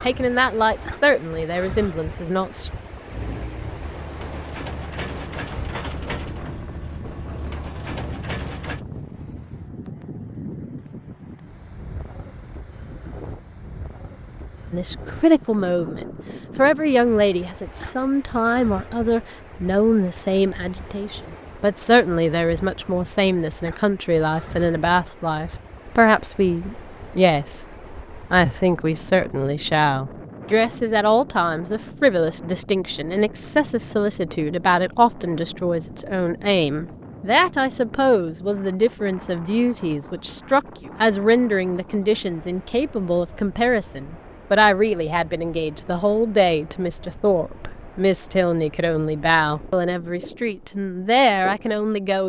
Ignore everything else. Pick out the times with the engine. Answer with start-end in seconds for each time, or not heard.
3.1-8.8.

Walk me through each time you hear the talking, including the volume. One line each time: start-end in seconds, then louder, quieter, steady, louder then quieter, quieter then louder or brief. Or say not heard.
0.0-2.7 brief
14.7-52.2 steady.